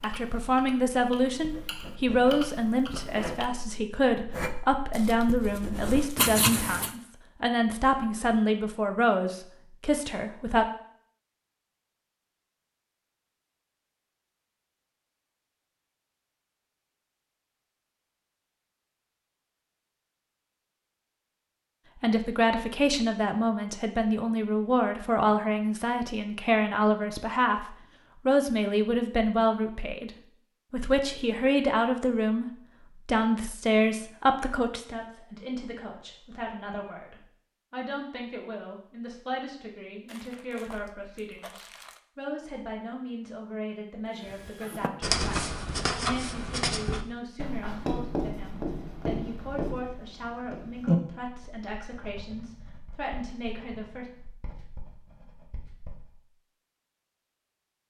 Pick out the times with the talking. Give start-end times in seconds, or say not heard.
0.0-10.7, 22.0-54.0.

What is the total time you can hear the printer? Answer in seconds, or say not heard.
not heard.